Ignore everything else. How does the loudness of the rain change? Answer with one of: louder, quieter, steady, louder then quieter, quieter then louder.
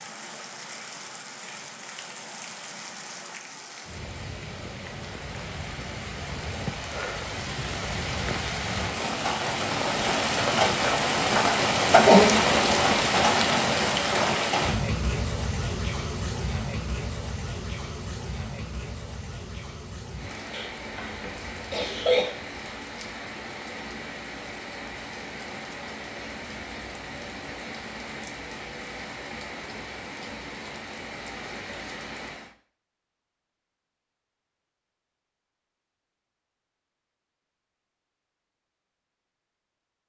louder then quieter.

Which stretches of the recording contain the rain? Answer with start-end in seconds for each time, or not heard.
0.0-32.5.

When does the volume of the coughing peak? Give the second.
12 s.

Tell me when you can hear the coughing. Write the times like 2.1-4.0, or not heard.
11.9-12.5, 20.5-22.3.